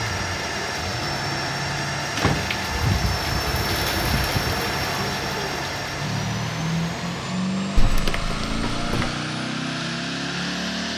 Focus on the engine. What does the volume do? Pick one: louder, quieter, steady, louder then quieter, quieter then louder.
steady.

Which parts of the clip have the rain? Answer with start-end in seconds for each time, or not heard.
0.0-7.2.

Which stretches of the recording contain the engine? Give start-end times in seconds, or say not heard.
0.0-10.9.